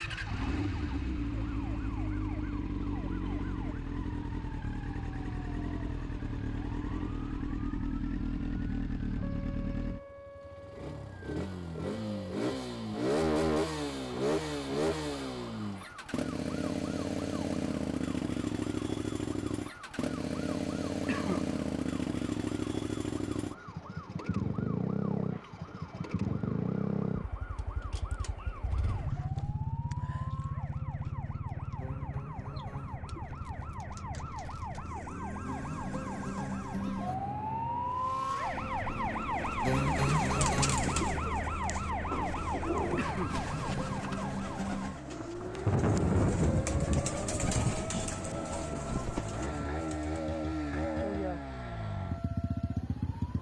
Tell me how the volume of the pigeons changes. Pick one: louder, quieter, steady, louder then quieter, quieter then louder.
quieter then louder.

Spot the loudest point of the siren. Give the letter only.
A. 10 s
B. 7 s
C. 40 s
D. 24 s
C.